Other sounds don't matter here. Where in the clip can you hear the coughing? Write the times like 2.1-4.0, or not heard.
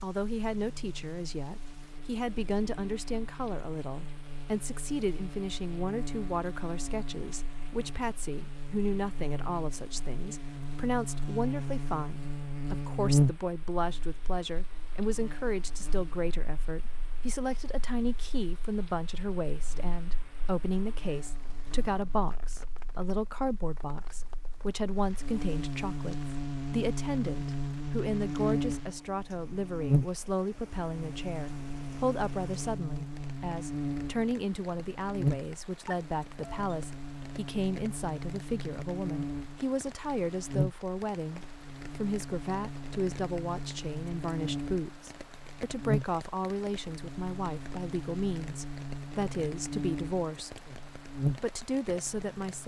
not heard.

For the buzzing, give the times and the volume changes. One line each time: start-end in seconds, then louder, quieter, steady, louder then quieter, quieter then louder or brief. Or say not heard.
0.1-52.6 louder.